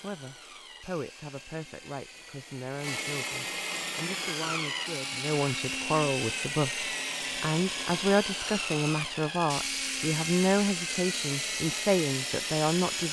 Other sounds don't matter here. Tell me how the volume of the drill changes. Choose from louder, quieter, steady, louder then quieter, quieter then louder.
louder.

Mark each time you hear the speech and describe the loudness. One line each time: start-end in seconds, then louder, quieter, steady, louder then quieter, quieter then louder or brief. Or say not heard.
0.0-13.0 louder.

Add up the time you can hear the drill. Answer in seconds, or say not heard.
13 s.